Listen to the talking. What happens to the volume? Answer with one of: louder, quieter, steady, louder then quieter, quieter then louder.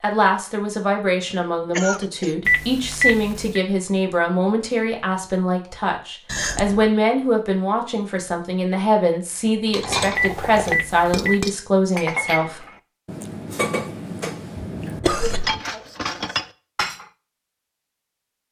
steady.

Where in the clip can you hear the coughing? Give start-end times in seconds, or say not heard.
1.1-2.4, 6.2-6.9, 14.6-15.6.